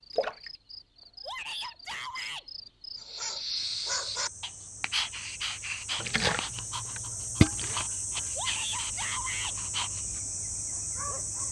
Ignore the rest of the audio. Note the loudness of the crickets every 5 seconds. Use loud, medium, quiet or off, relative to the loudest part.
medium, loud, loud.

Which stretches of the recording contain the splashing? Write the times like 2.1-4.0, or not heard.
0.1-0.5, 6.0-7.8.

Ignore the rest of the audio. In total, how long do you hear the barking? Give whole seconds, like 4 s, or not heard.
8 s.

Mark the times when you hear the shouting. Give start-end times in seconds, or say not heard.
1.2-2.5, 8.3-9.6.